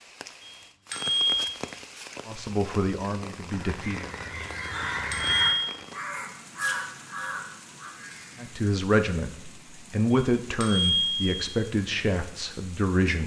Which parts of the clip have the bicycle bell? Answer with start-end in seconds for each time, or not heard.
0.4-1.6, 4.6-5.8, 10.1-11.6.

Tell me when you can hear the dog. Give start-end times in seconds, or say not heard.
not heard.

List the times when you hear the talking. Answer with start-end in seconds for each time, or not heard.
2.2-4.0, 8.4-13.2.